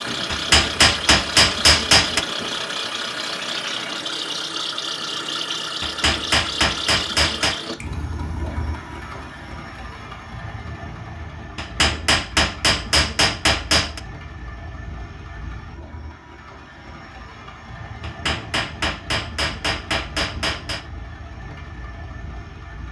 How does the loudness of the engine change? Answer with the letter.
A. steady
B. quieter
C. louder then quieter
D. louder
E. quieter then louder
B.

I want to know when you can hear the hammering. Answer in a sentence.
You can hear the hammering from 0.3 to 2.2 s, from 5.8 to 7.6 s, from 11.6 to 14.0 s and from 18.0 to 20.9 s.